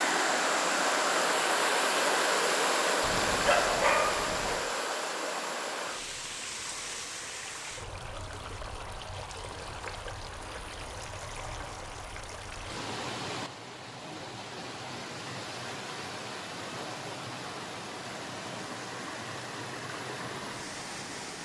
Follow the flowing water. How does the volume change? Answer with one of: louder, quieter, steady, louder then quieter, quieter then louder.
quieter.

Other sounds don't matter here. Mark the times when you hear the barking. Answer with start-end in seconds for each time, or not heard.
3.0-4.7.